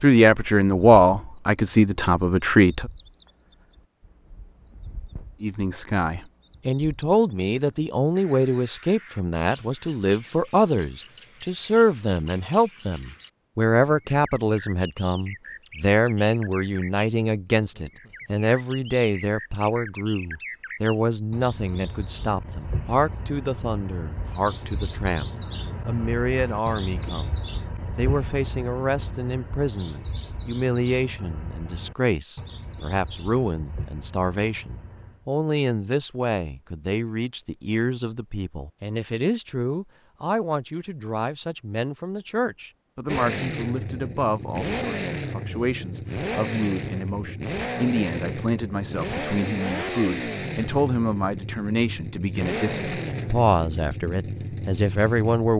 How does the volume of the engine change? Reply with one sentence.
The loudness of the engine stays about the same.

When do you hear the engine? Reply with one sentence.
You can hear the engine from 43.0 to 55.5 s.